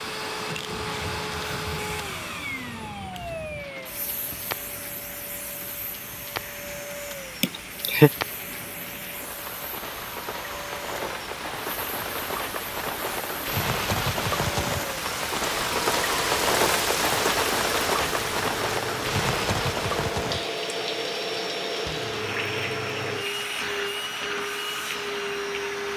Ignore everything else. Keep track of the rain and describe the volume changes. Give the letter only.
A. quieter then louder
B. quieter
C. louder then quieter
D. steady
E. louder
C.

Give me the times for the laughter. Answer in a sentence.
The laughter can be heard from 7.4 to 8.1 s.